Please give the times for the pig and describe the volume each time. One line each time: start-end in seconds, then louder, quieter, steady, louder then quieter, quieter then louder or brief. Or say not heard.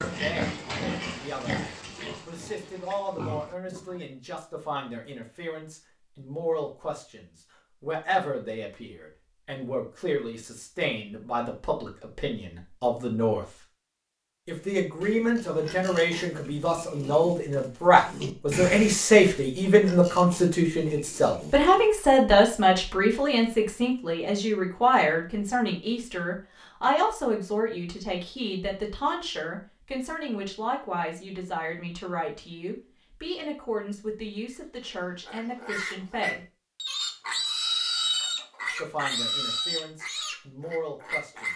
0.0-4.0 quieter then louder
14.6-21.9 louder then quieter
34.5-41.5 louder then quieter.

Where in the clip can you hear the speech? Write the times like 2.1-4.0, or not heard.
0.1-13.4, 14.4-36.4, 38.6-41.5.